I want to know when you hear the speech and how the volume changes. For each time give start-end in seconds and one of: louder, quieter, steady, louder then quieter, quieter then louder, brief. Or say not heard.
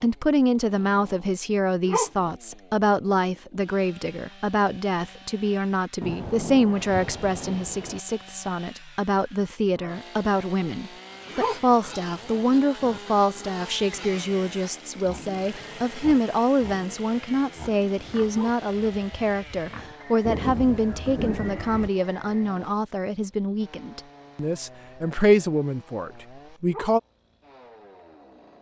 0.0-27.0 steady.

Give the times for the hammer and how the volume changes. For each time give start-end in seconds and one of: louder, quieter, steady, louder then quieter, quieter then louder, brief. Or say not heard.
not heard.